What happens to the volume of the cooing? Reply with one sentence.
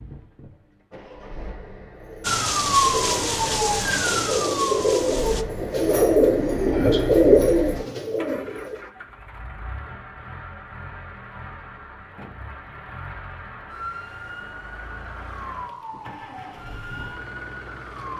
The volume of the cooing goes up.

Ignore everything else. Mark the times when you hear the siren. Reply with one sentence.
You can hear the siren from 2.2 to 5.5 s and from 13.7 to 18.1 s.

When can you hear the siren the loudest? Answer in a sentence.
The loudest moment of the siren is at 3 seconds.